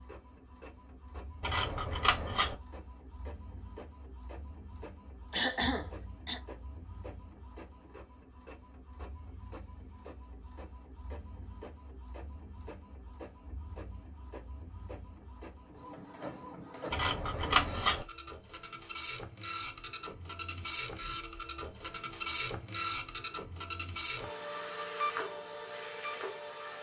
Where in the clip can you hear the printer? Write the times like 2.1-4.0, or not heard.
0.0-26.7.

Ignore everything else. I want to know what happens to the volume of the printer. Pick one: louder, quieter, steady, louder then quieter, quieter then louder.
louder.